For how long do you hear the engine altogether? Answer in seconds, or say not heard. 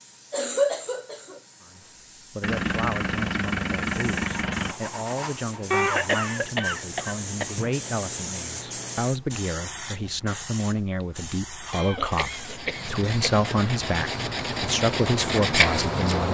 2 s.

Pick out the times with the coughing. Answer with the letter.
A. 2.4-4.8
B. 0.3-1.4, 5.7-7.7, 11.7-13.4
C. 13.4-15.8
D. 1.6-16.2
B.